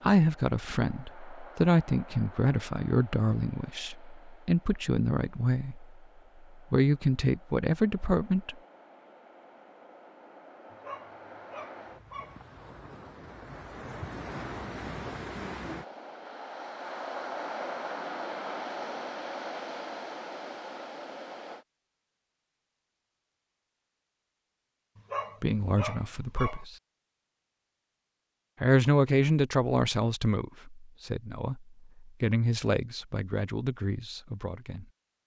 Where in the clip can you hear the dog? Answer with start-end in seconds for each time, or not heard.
10.7-12.4, 24.9-26.6.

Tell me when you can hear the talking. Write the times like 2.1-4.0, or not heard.
0.0-5.8, 6.7-8.6, 25.4-26.8, 28.6-34.9.